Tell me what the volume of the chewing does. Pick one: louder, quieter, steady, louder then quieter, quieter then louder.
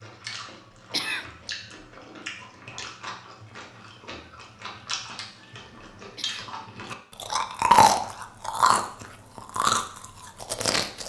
louder.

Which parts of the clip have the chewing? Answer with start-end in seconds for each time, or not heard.
0.0-11.0.